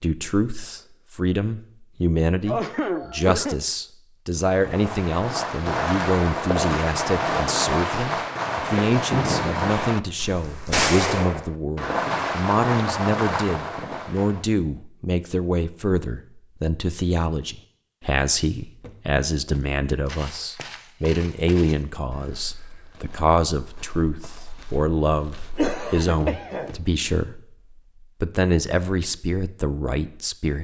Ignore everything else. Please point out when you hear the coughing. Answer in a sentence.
You can hear the coughing from 2.5 to 3.6 s and from 25.6 to 26.8 s.